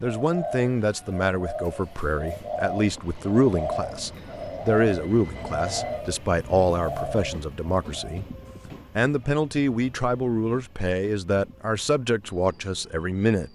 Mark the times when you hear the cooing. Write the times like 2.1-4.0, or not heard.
0.0-8.2.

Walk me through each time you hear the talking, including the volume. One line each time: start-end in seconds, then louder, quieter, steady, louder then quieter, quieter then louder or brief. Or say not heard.
0.0-13.5 steady.